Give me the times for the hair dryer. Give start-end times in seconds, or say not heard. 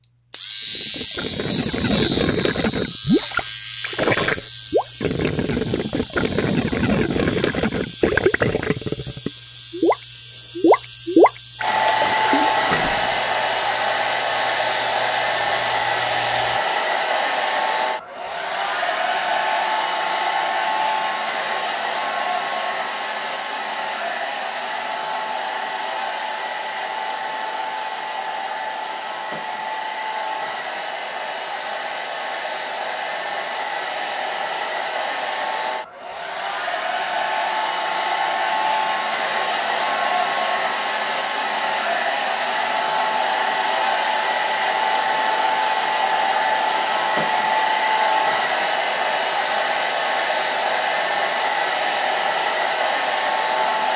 11.6-53.9.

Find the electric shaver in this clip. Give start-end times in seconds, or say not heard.
0.0-16.6.